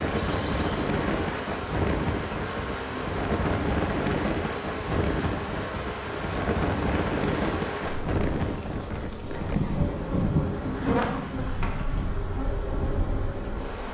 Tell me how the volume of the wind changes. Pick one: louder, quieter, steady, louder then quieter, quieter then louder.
quieter.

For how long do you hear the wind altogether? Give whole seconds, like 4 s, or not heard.
14 s.